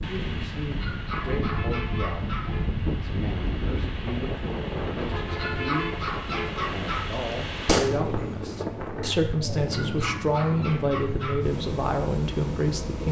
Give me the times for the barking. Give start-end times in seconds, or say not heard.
0.8-2.5, 5.3-7.2, 9.7-11.5.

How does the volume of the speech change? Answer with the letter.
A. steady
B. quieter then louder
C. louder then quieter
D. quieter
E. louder
E.